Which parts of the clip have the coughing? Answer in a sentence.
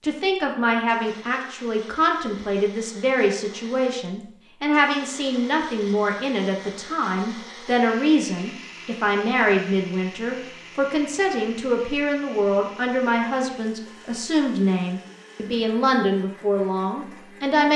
The coughing can't be heard in this clip.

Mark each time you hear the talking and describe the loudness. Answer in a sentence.
You can hear the talking from 0.0 to 17.7 s, at a steady volume.